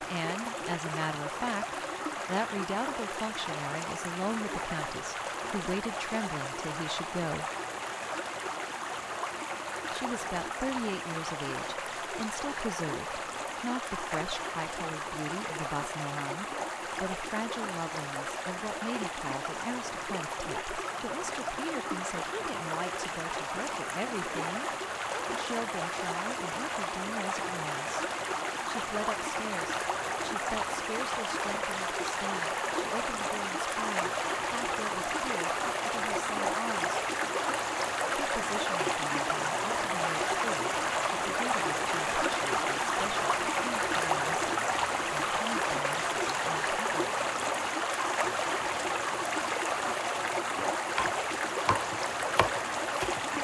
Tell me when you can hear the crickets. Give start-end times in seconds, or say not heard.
not heard.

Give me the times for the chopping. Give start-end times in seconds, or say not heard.
50.5-53.2.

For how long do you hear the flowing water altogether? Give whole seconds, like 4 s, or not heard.
53 s.